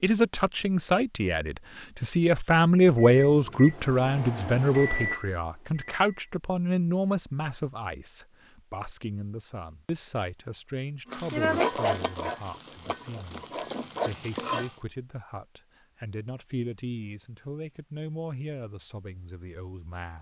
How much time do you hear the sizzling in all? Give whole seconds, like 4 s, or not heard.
4 s.